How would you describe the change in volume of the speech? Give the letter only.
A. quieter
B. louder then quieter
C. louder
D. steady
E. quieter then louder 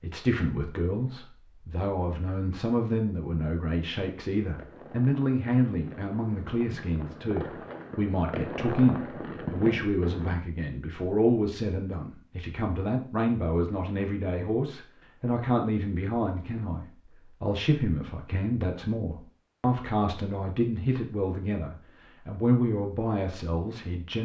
D.